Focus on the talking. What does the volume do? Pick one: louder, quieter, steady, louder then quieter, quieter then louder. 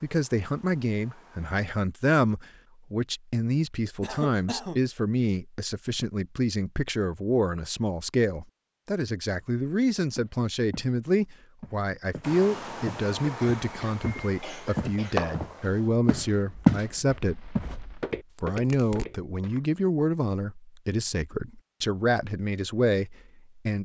steady.